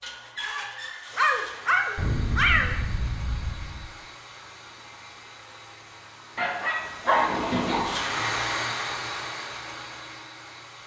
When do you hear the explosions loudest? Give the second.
2 s.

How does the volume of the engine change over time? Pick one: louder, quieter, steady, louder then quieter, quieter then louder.
quieter then louder.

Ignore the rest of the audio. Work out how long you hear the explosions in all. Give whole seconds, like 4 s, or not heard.
2 s.